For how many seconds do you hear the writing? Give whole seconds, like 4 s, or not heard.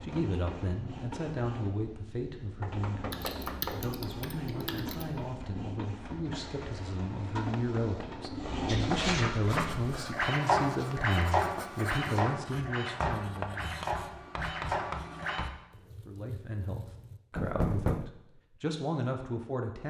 8 s.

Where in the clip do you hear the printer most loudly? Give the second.
11 s.